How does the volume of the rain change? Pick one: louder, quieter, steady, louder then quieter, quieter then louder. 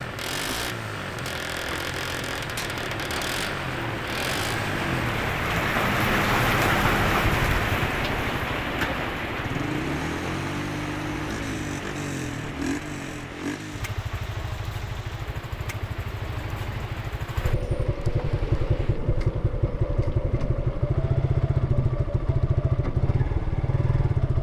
louder then quieter.